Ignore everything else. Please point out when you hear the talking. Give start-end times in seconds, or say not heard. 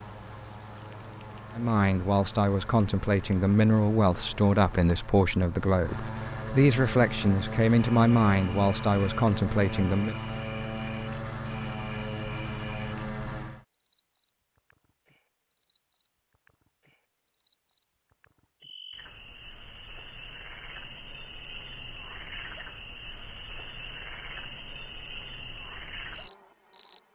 1.6-10.2.